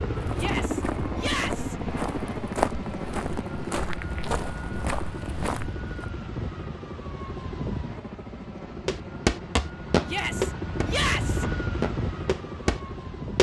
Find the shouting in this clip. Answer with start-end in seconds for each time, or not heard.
0.3-1.8, 10.1-11.4.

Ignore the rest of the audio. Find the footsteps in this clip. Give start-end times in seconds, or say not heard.
0.1-6.0, 8.8-13.3.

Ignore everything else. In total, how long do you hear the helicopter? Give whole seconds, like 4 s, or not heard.
13 s.